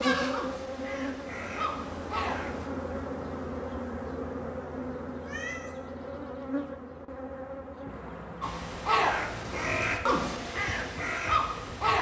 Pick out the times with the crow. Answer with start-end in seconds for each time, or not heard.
0.0-2.7, 8.4-11.9.